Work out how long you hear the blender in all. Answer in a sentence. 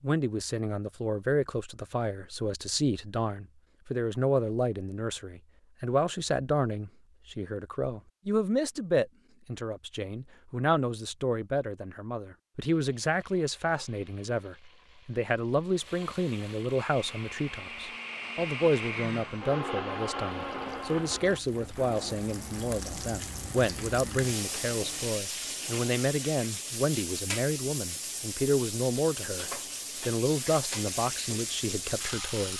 The blender can be heard for 9 seconds in total.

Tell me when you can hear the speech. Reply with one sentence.
The speech can be heard from 0.0 to 32.5 s.